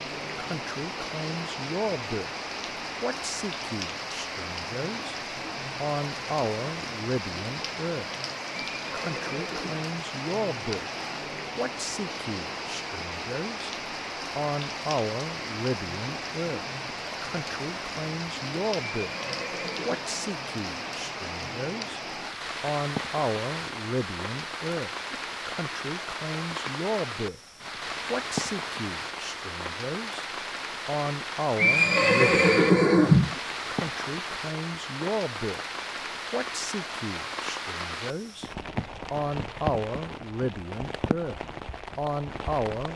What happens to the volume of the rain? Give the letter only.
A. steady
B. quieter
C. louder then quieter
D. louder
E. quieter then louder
A.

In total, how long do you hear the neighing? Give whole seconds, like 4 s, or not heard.
4 s.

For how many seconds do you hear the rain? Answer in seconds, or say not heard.
43 s.